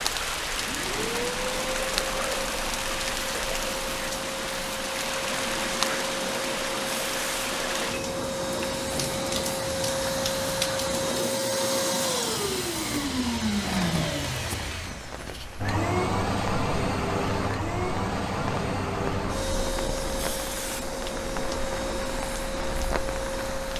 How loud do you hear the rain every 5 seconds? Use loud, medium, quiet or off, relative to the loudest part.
loud, loud, medium, medium, medium.